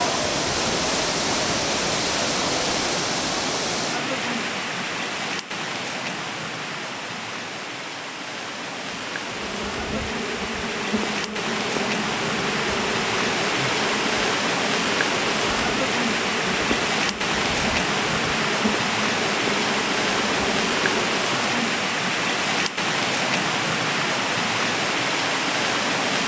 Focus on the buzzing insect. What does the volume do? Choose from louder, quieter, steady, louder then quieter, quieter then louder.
steady.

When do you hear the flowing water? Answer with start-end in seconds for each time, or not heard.
0.0-26.2.